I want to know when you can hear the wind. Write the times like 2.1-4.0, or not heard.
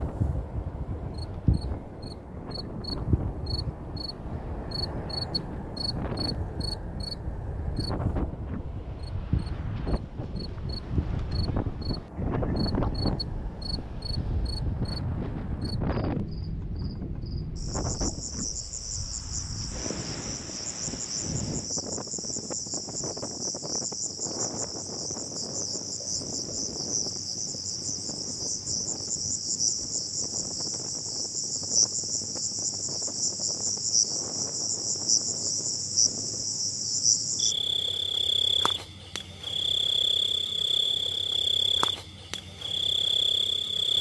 0.0-36.5.